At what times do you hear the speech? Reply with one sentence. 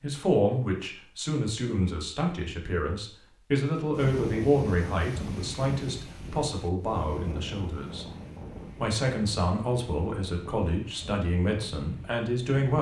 The speech can be heard from 0.0 to 8.1 s and from 8.8 to 12.7 s.